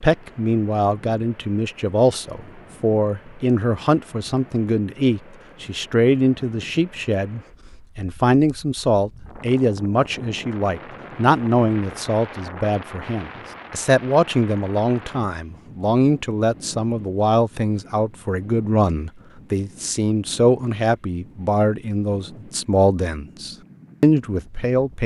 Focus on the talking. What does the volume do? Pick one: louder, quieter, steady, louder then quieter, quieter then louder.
steady.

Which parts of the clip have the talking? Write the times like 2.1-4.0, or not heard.
0.0-25.0.